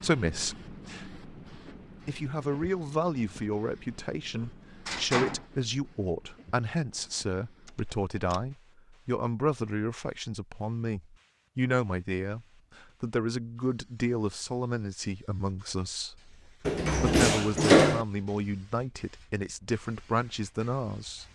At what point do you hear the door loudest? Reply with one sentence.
The volume of the door peaks at 18 seconds.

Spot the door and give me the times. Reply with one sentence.
The door can be heard from 4.3 to 5.5 s, from 7.7 to 8.4 s and from 16.6 to 18.1 s.